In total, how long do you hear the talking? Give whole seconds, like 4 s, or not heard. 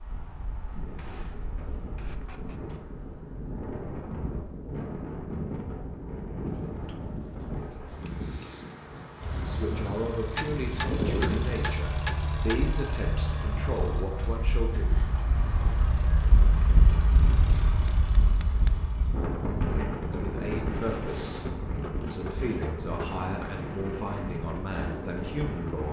11 s.